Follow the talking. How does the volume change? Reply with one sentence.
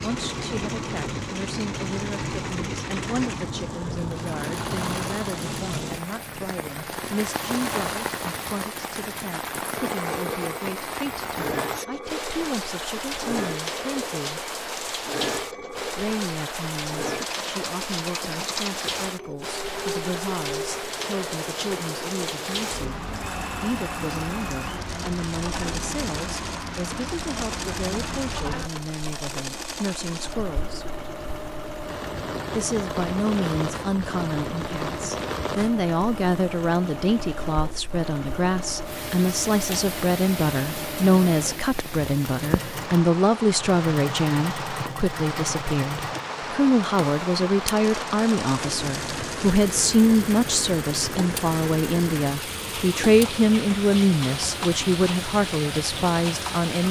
The volume of the talking goes up.